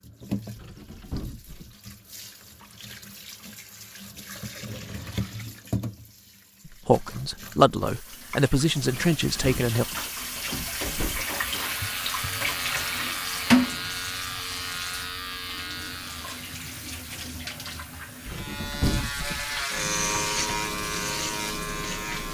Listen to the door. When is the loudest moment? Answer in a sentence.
The loudest moment of the door is at 19 seconds.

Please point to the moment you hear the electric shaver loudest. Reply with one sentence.
The volume of the electric shaver peaks at 20 seconds.